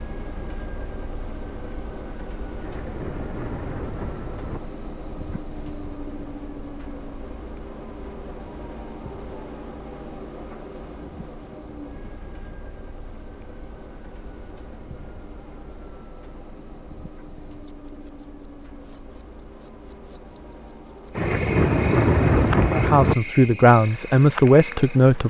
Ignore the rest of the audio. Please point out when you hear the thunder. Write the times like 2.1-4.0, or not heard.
2.5-4.6, 21.1-23.1.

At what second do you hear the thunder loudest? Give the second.
22 s.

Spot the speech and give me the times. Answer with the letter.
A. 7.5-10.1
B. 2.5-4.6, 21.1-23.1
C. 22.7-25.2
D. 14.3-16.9
C.